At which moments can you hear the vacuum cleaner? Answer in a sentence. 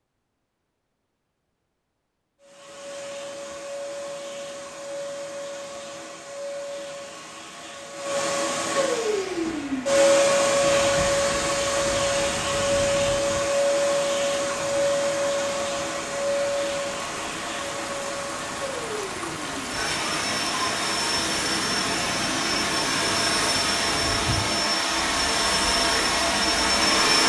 You can hear the vacuum cleaner from 2.4 to 27.2 s.